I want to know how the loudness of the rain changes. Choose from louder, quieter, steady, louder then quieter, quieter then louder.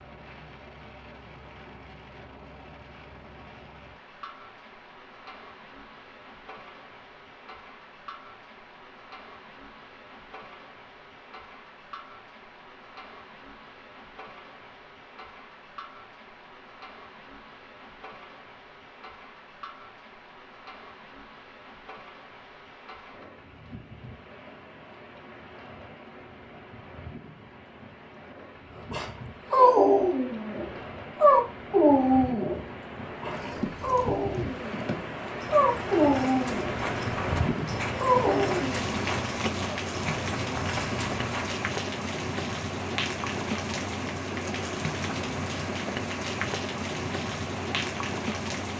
louder.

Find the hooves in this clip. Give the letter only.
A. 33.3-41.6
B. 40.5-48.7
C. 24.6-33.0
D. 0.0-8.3
A.